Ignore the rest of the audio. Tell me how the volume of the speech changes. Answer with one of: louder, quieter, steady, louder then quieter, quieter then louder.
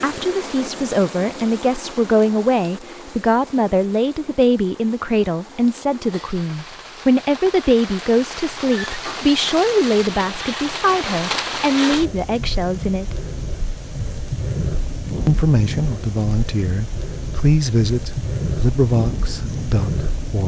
steady.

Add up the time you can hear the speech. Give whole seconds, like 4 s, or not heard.
18 s.